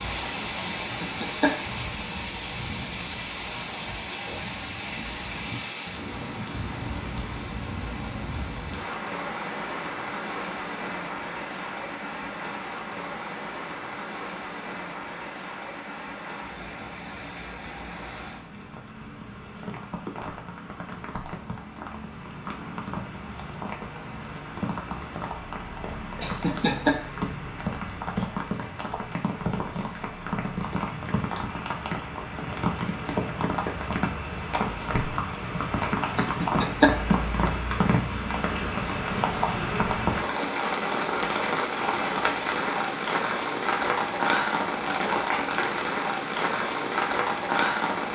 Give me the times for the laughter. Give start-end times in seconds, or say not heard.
0.8-1.6, 26.1-26.9, 36.1-37.0.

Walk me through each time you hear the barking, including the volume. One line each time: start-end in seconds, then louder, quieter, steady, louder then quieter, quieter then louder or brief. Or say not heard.
not heard.